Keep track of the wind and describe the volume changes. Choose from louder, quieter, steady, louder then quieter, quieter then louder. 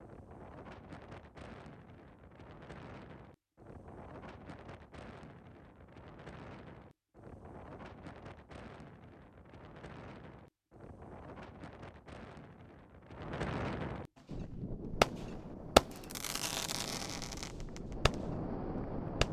louder.